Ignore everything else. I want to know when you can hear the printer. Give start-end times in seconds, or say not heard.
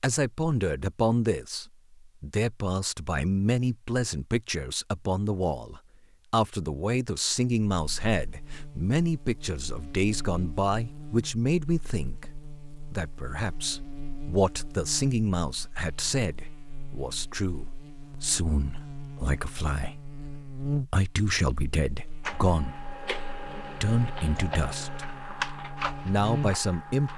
22.2-27.1.